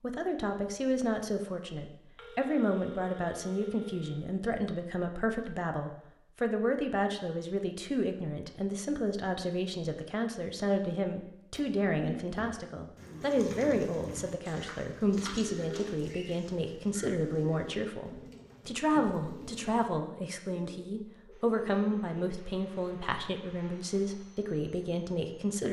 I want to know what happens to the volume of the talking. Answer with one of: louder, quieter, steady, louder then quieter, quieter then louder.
steady.